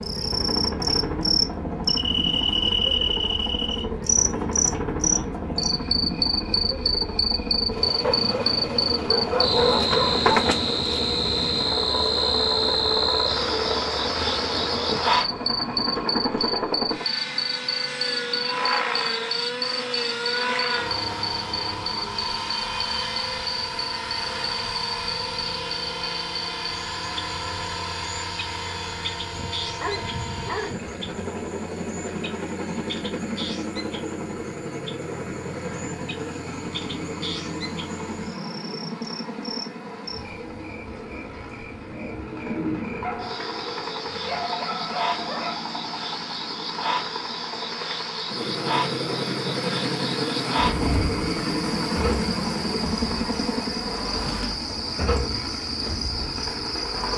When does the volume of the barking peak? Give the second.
10 s.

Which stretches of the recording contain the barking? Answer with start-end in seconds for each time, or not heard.
8.0-10.3, 29.2-31.2, 43.0-45.6.